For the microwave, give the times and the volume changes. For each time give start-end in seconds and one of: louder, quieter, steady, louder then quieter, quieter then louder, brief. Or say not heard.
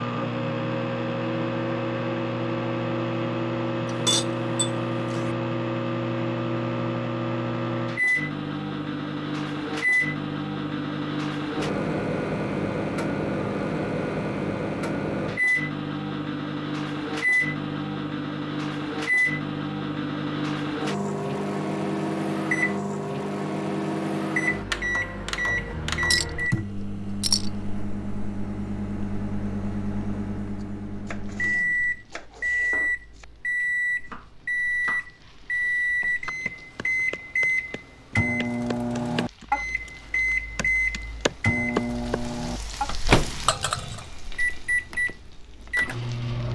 0.0-46.5 steady.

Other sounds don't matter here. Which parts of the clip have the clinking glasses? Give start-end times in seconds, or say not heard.
3.9-5.3, 26.1-27.6, 43.5-44.0.